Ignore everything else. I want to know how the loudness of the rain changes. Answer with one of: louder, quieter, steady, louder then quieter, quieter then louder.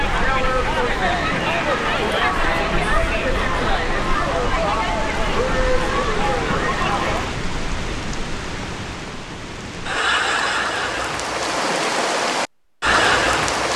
louder.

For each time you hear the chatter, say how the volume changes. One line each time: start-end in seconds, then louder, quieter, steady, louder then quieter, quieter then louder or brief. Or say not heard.
0.0-7.3 steady.